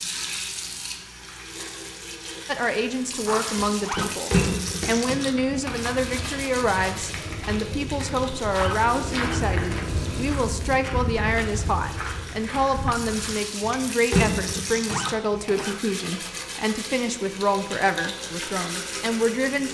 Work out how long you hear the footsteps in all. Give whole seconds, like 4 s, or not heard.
11 s.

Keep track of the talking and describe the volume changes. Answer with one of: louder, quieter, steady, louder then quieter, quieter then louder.
steady.